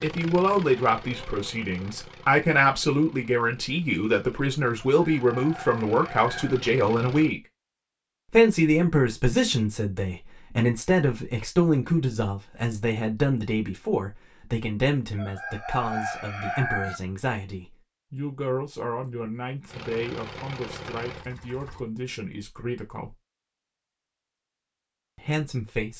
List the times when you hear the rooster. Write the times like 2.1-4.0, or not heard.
4.9-6.6, 15.2-17.0.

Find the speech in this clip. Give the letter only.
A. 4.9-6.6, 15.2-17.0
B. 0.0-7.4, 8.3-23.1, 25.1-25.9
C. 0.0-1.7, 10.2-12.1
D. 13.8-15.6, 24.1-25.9
B.